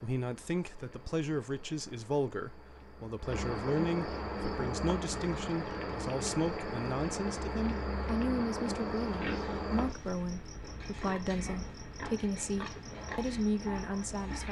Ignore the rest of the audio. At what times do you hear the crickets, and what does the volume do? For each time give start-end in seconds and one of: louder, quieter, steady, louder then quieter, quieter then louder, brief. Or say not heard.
0.0-14.4 louder then quieter.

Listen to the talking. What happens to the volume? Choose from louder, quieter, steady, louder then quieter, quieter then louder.
steady.